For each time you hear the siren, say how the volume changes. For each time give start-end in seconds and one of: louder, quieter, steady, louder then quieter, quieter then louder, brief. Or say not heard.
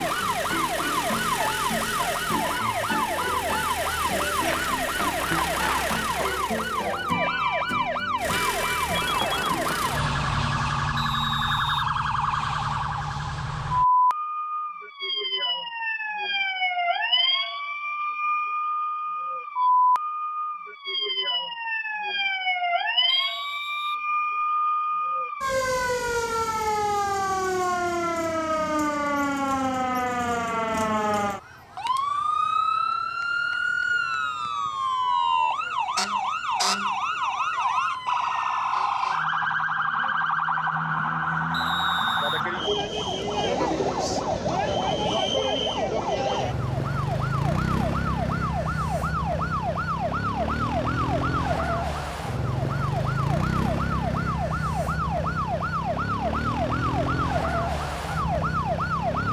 0.0-59.2 steady.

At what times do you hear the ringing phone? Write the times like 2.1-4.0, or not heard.
8.9-9.6.